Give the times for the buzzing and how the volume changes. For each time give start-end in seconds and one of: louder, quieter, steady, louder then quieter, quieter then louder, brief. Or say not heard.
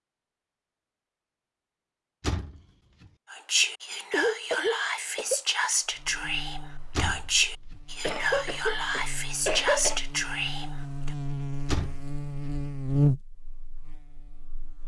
5.8-14.8 louder.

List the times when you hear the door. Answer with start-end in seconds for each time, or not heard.
2.2-3.1, 7.0-7.8, 11.7-12.6.